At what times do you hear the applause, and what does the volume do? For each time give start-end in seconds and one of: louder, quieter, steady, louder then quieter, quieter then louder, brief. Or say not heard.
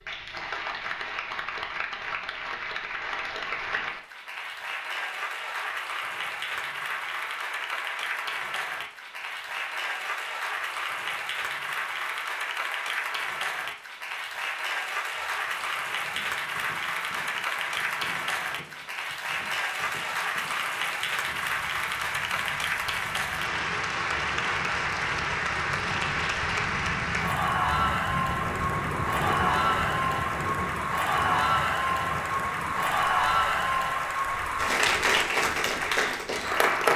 0.0-36.9 louder.